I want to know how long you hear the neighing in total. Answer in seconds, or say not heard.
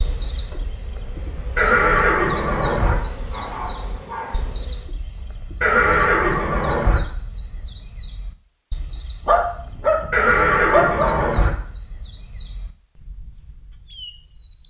4 s.